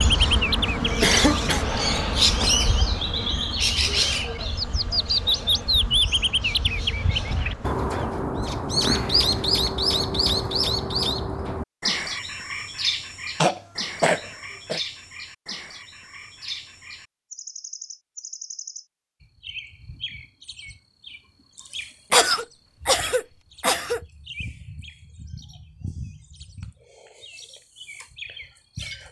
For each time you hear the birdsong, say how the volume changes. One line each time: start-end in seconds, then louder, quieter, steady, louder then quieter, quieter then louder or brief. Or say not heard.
0.0-29.0 quieter.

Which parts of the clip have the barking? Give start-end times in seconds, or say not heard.
not heard.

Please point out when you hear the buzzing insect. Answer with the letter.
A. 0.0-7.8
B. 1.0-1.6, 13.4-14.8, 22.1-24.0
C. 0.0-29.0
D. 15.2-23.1
A.